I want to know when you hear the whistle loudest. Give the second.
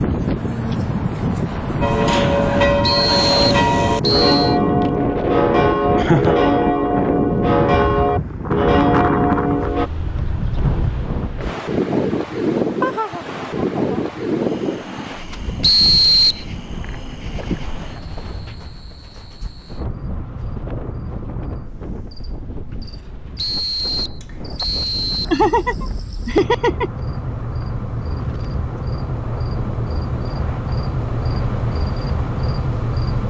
16 s.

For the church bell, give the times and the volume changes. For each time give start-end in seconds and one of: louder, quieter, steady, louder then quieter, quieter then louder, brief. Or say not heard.
1.8-9.9 steady.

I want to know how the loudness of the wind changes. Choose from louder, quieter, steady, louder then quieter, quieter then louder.
quieter.